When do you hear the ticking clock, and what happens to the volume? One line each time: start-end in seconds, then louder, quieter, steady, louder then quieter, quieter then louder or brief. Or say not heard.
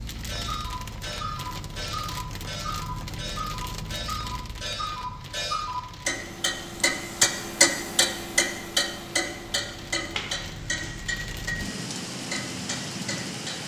0.1-13.6 louder then quieter.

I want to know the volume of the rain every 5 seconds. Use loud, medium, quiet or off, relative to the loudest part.
loud, medium, loud.